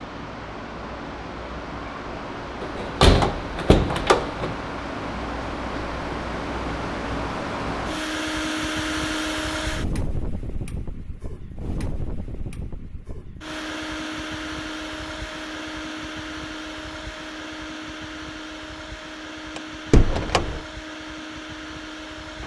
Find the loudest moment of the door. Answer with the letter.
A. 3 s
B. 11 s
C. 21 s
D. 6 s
A.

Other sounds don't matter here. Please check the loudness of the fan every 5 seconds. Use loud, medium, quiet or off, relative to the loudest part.
medium, loud, medium, medium, medium.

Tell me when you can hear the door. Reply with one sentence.
You can hear the door from 2.6 to 4.5 s and from 19.6 to 20.6 s.